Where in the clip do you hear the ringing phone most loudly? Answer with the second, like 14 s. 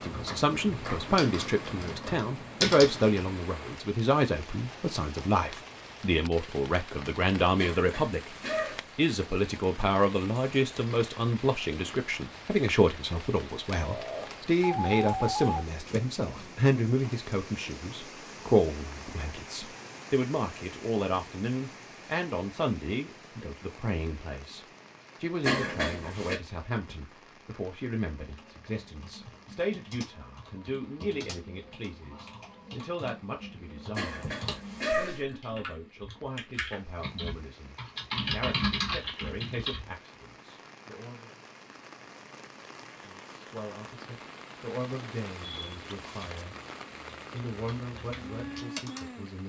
15 s.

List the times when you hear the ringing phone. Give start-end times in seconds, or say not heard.
13.7-15.7.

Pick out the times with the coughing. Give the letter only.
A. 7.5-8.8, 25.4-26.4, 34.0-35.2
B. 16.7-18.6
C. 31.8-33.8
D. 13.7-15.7
A.